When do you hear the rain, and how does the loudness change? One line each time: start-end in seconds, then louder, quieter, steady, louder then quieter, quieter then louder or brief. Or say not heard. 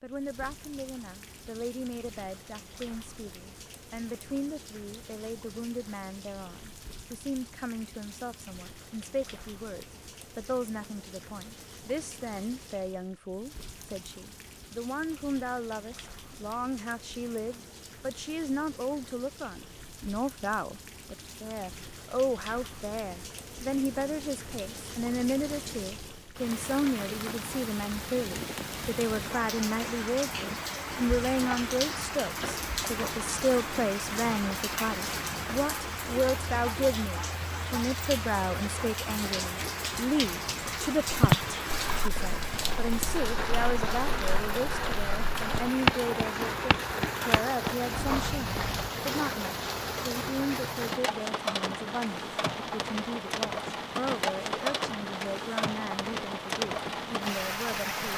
0.0-58.1 louder.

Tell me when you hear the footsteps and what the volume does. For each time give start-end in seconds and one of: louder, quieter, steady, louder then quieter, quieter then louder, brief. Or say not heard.
41.2-48.9 louder then quieter.